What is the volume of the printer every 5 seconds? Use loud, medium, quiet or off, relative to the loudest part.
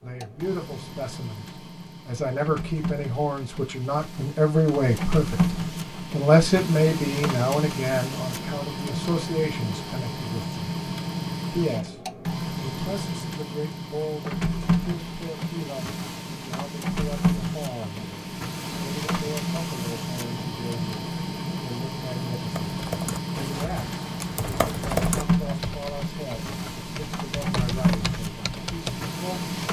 medium, loud, loud, loud, loud, loud.